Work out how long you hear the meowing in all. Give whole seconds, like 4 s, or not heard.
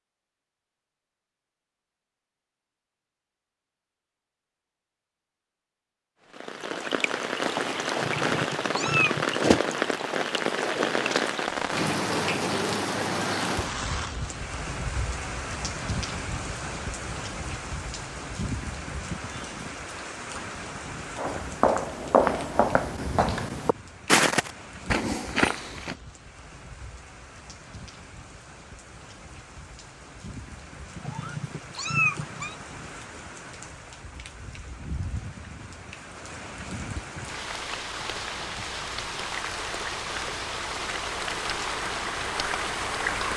3 s.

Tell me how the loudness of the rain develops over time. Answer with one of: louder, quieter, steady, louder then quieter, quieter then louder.
quieter then louder.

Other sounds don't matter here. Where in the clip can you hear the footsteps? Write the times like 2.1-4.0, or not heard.
21.1-25.9.